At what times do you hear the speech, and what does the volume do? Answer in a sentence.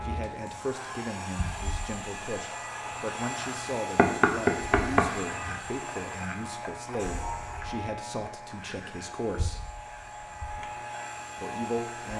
You can hear the speech from 0.0 to 9.7 s, at a steady volume; and briefly from 11.4 to 12.1 s.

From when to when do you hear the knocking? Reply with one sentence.
The knocking can be heard from 4.0 to 5.5 s.